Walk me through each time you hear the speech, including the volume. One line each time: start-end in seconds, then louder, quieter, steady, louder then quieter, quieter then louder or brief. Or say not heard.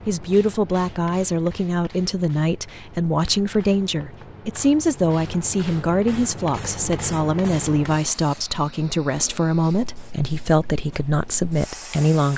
0.1-12.3 steady.